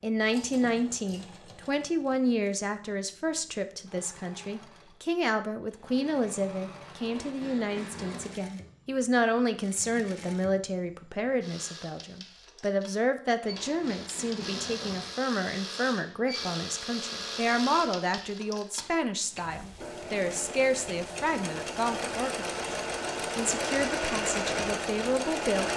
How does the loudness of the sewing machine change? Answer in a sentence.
The loudness of the sewing machine goes up.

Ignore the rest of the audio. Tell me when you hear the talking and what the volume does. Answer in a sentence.
The talking can be heard from 0.0 to 25.7 s, at a steady volume.